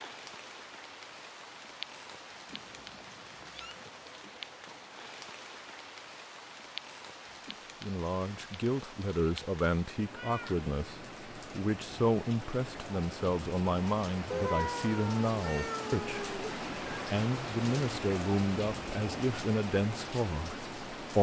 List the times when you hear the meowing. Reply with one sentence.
The meowing can be heard from 2.5 to 3.8 s, from 10.1 to 10.6 s and from 14.3 to 16.6 s.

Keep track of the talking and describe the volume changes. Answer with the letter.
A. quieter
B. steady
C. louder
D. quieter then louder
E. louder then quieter
B.